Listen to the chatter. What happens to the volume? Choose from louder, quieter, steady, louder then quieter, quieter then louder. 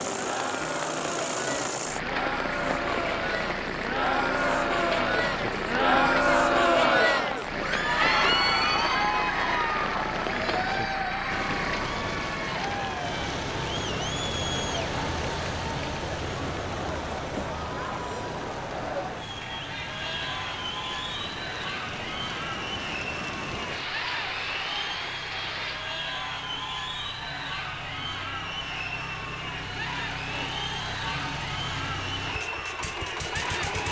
quieter.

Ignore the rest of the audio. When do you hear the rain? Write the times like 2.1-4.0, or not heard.
0.0-25.9.